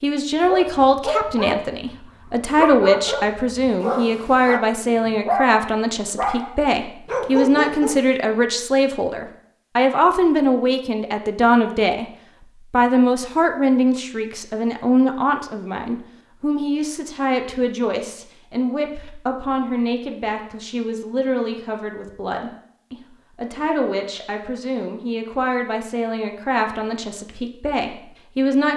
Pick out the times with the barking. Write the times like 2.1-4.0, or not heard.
0.5-8.0.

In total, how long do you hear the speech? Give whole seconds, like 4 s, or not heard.
28 s.